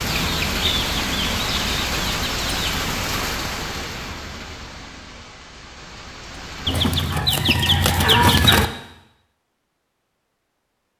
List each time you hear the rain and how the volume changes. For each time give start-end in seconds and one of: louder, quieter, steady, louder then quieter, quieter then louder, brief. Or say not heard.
0.0-7.3 quieter.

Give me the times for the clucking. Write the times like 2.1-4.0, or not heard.
0.1-2.8, 6.7-8.7.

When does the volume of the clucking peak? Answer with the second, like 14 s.
8 s.